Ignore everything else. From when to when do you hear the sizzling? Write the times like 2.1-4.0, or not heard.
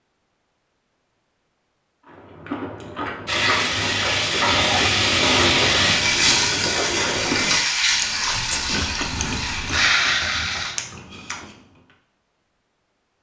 3.2-10.8.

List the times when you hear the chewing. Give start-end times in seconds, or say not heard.
2.0-11.6.